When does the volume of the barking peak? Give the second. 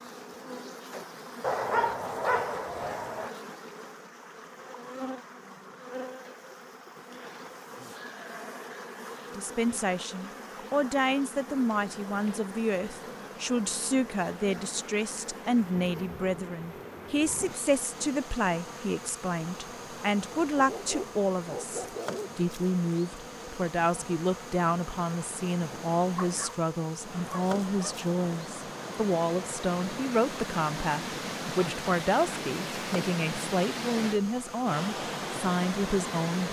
2 s.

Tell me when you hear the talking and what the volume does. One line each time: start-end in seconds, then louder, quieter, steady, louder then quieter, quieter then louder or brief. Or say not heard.
9.3-36.4 steady.